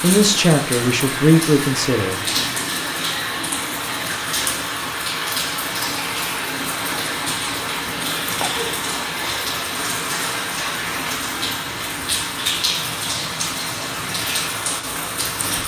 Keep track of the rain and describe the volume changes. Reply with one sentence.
The loudness of the rain stays about the same.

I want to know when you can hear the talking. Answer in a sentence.
You can hear the talking from 0.0 to 2.5 s.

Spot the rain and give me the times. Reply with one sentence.
The rain can be heard from 0.0 to 15.6 s.